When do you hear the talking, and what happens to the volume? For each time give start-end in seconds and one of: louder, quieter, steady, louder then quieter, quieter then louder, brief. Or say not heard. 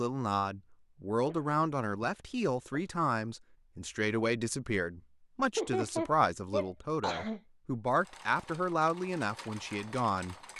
0.0-10.3 steady.